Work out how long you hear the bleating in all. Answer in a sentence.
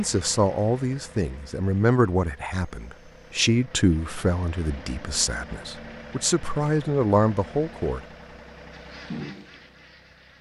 You can't hear the bleating here.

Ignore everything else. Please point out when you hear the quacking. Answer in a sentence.
The quacking can be heard from 8.7 to 10.3 s.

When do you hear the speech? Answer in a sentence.
The speech can be heard from 0.0 to 8.0 s.